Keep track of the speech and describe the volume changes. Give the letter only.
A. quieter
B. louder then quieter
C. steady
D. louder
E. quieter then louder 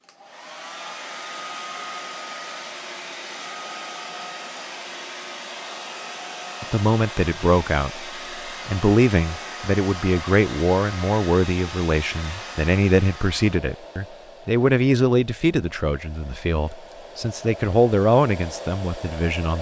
C.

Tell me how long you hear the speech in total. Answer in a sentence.
You can hear the speech for 13 seconds altogether.